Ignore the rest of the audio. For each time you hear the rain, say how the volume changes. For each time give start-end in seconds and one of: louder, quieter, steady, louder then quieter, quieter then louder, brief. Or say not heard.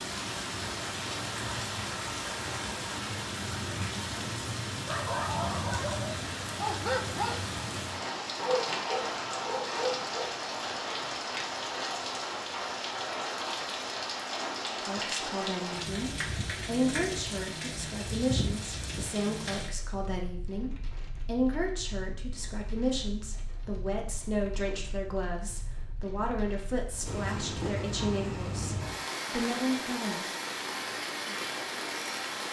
0.0-32.4 quieter then louder.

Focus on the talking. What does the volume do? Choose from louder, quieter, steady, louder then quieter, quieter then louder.
steady.